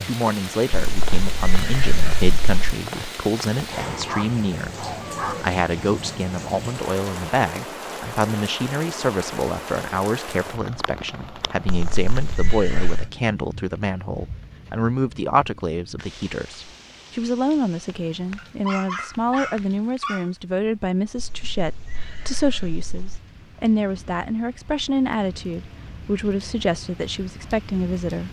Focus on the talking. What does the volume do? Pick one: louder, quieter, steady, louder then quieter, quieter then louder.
steady.